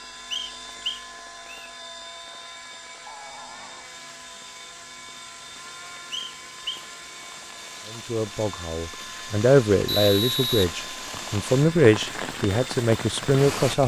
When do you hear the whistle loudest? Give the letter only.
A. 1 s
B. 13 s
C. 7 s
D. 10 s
D.